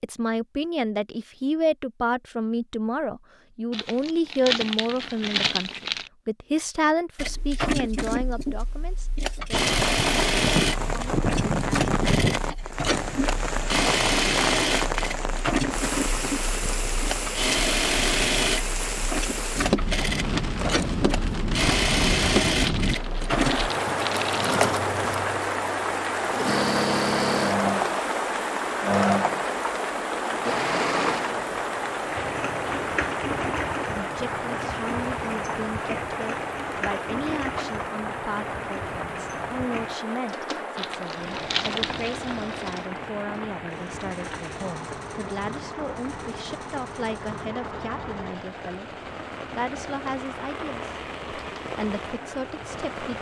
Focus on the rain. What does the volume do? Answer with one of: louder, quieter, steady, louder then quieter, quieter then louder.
quieter.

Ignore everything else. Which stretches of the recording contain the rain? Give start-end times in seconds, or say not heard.
9.5-53.1.